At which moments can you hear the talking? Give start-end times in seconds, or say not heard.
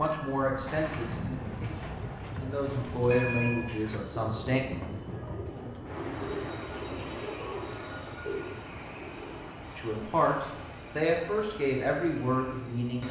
0.0-4.6, 9.8-13.0.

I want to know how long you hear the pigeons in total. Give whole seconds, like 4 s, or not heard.
9 s.